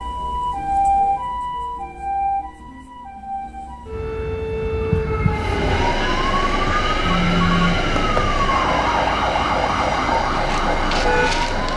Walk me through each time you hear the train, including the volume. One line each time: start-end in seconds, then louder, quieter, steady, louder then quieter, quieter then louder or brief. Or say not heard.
5.2-11.7 steady.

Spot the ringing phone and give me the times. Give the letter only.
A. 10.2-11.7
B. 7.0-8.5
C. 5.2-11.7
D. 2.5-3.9
B.